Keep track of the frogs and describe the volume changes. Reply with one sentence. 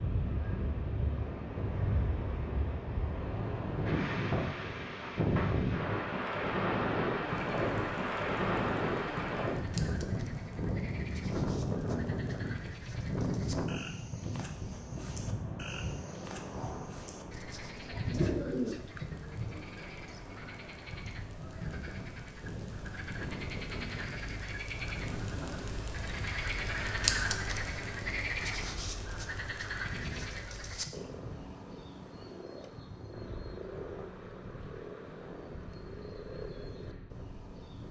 The volume of the frogs goes up, then down.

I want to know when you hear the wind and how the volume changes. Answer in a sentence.
You can hear the wind from 0.0 to 37.8 s, getting quieter.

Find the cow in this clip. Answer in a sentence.
The cow can't be heard in this clip.